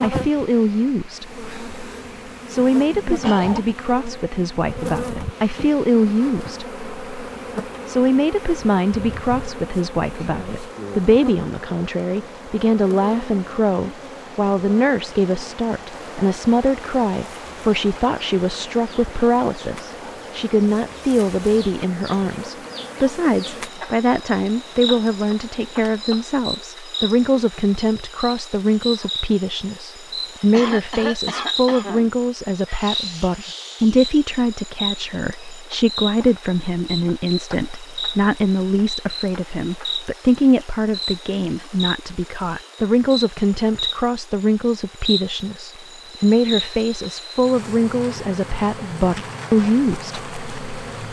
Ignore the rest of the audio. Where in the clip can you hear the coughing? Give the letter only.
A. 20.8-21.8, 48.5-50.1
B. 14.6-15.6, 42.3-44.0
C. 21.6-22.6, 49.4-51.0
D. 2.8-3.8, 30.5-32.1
D.